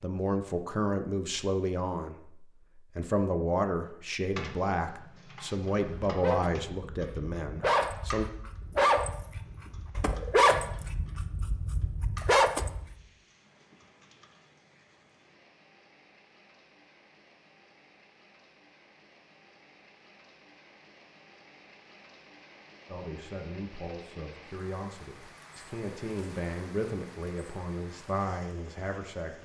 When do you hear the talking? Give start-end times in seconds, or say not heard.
0.0-8.2, 22.9-29.3.